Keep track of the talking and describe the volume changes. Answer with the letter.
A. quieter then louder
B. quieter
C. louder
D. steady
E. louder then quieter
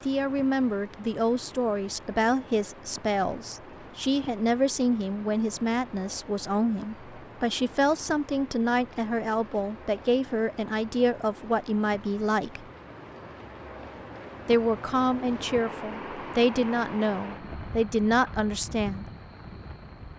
D.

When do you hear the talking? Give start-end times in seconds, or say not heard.
0.0-12.7, 14.4-19.1.